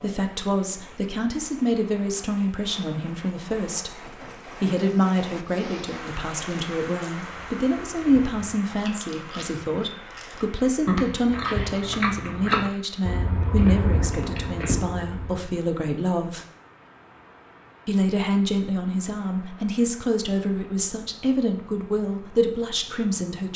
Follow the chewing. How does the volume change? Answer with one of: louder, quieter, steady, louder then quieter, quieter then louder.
louder.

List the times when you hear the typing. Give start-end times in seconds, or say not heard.
not heard.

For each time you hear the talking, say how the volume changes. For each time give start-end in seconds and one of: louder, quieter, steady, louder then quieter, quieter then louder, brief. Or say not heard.
0.0-16.4 steady
17.9-23.5 steady.